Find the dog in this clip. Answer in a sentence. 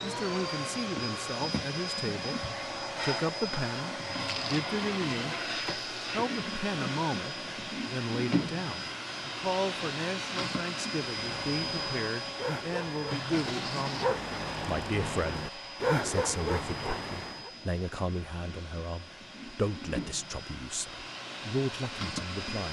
You can hear the dog from 11.2 to 17.5 s.